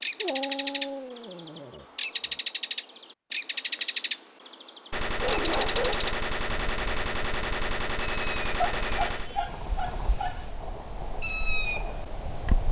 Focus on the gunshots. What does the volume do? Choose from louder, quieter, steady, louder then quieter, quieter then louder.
steady.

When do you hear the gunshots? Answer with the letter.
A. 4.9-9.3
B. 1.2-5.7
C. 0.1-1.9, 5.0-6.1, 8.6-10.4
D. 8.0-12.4
A.